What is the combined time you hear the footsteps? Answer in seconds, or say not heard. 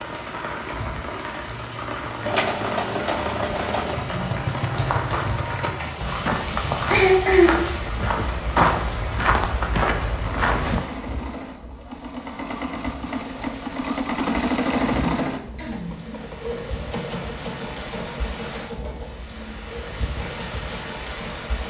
6 s.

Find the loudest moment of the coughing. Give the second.
7 s.